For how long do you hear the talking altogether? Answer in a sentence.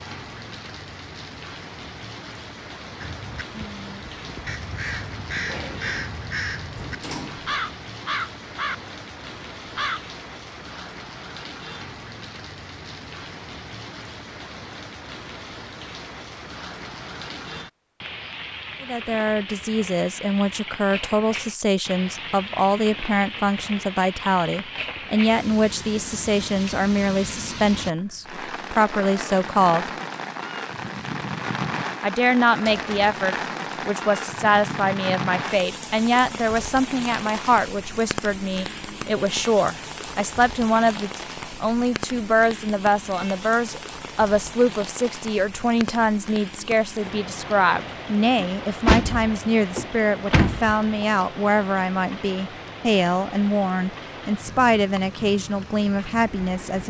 You can hear the talking for 36 seconds altogether.